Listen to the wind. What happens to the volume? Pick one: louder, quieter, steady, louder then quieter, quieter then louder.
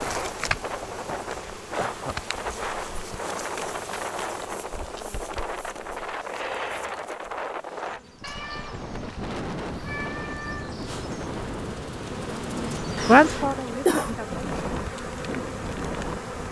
steady.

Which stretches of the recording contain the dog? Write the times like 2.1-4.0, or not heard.
not heard.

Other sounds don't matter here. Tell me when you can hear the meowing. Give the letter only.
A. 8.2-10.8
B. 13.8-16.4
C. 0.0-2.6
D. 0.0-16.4
A.